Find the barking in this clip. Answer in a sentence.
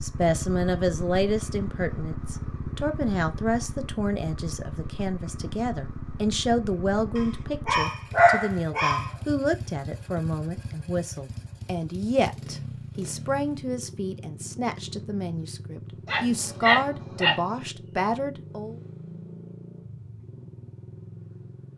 The barking can be heard from 7.2 to 9.1 s and from 16.1 to 17.4 s.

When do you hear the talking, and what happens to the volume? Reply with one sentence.
You can hear the talking from 0.0 to 18.8 s, at a steady volume.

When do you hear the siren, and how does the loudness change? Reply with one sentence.
You can't hear the siren here.